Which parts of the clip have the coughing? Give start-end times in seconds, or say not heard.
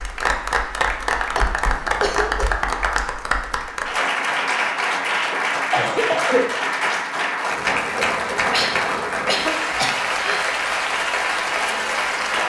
1.4-2.6, 5.1-6.7, 8.5-10.6.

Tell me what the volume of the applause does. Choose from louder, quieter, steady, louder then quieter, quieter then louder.
steady.